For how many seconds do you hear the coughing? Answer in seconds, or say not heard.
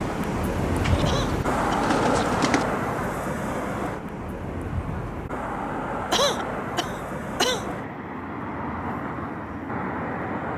2 s.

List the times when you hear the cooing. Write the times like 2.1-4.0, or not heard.
0.7-2.6.